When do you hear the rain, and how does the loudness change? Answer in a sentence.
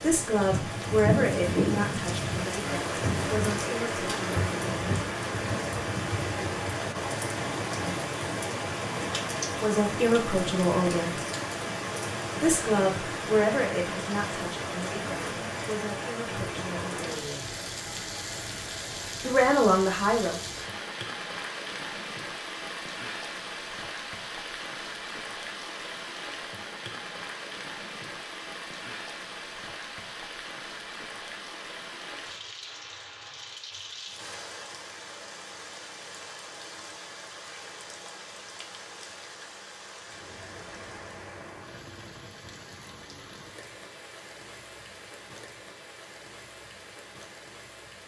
You can hear the rain from 0.0 to 48.0 s, getting quieter.